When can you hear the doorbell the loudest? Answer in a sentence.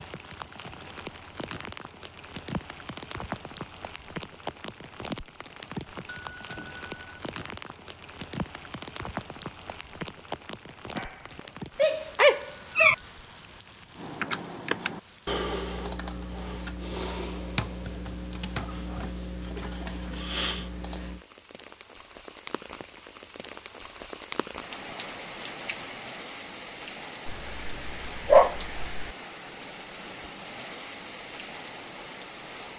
The volume of the doorbell peaks at 7 seconds.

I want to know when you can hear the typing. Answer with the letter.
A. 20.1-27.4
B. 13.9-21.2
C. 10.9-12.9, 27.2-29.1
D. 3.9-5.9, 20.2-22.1
B.